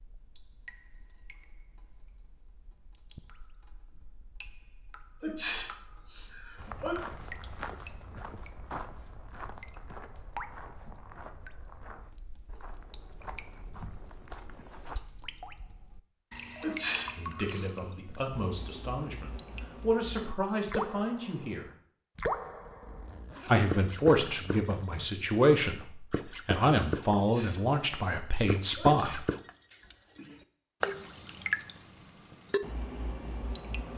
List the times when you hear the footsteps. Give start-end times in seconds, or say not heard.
6.5-15.0.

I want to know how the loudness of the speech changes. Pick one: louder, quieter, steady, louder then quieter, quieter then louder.
louder.